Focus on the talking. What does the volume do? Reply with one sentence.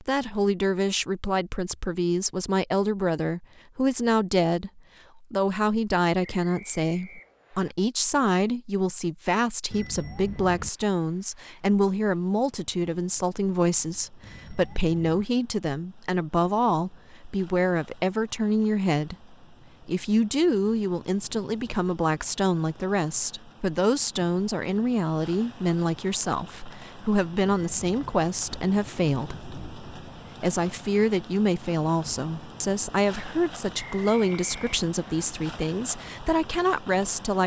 The volume of the talking stays about the same.